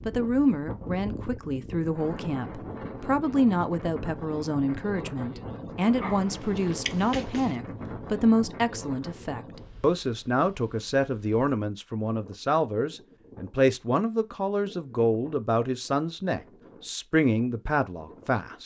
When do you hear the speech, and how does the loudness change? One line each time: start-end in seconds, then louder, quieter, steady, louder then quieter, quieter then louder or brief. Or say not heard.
0.1-18.6 steady.